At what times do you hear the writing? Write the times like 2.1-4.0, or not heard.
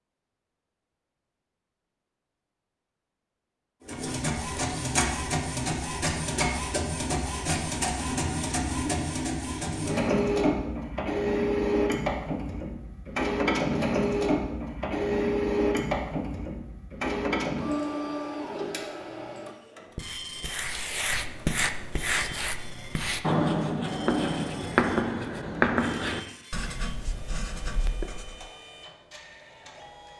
19.9-28.4.